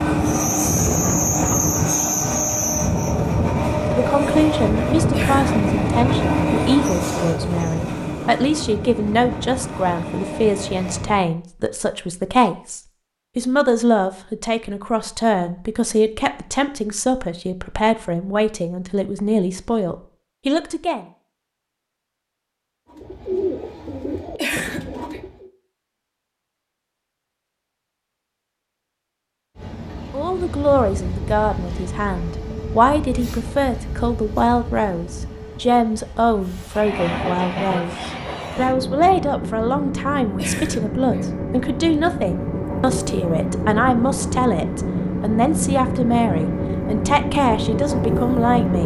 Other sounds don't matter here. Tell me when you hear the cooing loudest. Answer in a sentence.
The volume of the cooing peaks at 23 seconds.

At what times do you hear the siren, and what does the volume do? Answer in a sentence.
The siren can't be heard in this clip.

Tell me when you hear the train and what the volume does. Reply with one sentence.
The train can be heard from 0.0 to 11.2 s, getting quieter; and from 29.6 to 48.8 s, getting louder.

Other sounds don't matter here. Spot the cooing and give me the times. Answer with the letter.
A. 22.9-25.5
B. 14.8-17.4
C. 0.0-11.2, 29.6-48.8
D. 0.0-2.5
A.